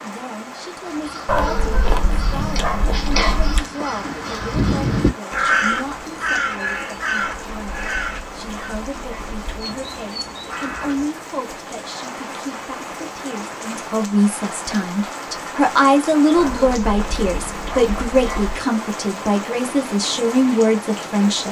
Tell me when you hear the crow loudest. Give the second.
6 s.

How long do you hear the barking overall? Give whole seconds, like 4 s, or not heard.
7 s.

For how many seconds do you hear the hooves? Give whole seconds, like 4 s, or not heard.
not heard.